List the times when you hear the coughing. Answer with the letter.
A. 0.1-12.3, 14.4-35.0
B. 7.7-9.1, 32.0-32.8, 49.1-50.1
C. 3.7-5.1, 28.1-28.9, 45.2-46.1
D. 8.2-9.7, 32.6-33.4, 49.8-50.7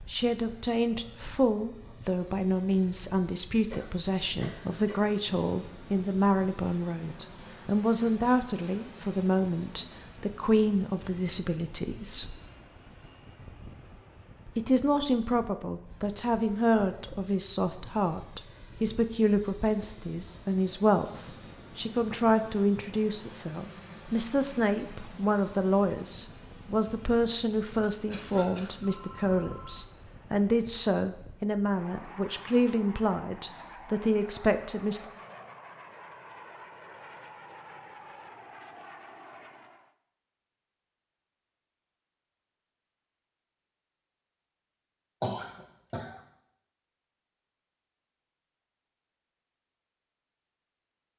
C.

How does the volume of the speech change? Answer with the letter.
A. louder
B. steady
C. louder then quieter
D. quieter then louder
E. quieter
B.